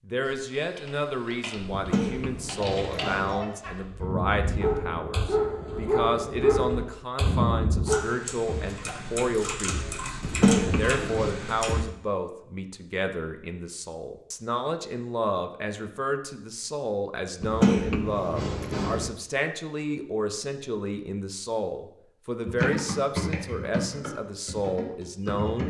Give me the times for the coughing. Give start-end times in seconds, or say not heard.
1.7-3.4, 10.2-11.3, 17.4-19.1.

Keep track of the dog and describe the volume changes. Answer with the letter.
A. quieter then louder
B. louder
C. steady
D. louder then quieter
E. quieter
B.